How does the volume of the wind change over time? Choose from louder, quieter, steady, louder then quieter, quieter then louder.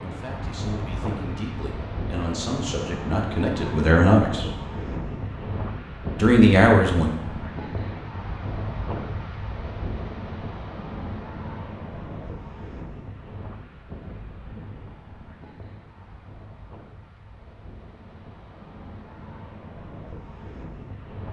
quieter.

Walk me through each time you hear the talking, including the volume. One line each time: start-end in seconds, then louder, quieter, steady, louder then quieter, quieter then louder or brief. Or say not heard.
0.0-4.5 louder
6.2-7.1 brief.